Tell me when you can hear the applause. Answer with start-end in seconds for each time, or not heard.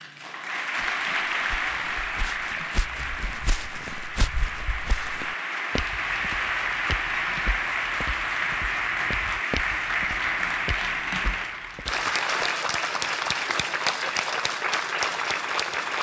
0.0-15.9.